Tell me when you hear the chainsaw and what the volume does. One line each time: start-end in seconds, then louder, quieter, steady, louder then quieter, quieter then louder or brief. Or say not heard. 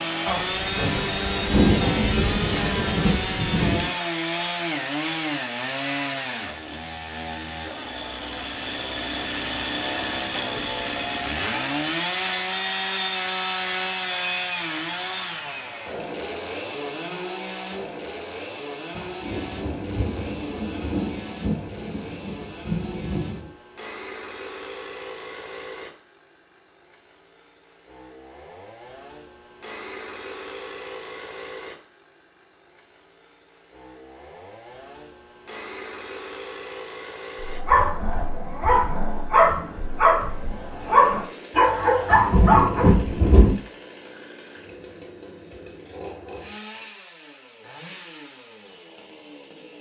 0.0-49.7 quieter.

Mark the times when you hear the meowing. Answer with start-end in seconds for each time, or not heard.
not heard.